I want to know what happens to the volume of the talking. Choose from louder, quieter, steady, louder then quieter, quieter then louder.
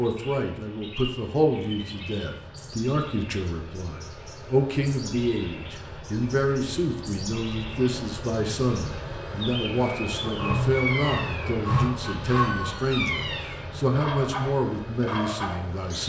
steady.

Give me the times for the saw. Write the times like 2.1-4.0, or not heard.
10.2-12.8.